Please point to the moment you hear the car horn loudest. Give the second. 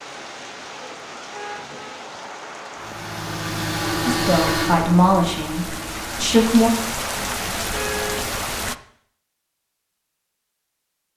8 s.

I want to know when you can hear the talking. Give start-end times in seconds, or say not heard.
4.0-6.7.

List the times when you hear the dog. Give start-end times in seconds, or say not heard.
not heard.